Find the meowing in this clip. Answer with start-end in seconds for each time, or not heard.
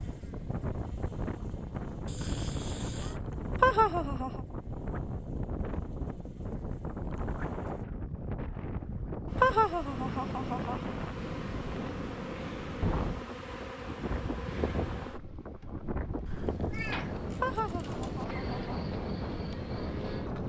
2.0-3.2, 16.2-18.2.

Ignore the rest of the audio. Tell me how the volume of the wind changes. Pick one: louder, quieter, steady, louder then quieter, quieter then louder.
steady.